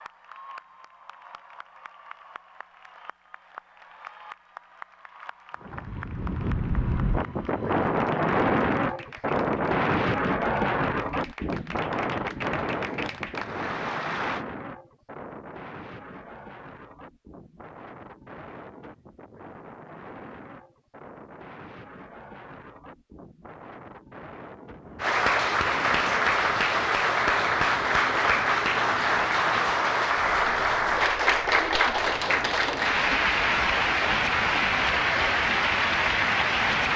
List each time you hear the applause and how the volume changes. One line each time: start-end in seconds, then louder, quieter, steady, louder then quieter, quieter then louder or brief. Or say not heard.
0.0-14.4 louder
25.0-36.9 steady.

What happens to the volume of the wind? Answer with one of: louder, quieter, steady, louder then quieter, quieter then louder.
quieter.